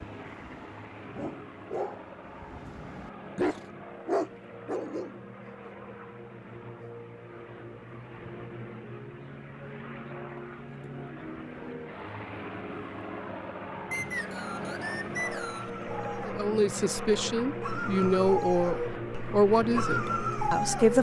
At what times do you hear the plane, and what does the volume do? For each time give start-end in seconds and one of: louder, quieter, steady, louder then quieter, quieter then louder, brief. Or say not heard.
0.0-20.9 louder.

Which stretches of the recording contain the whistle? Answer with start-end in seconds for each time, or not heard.
13.9-15.7.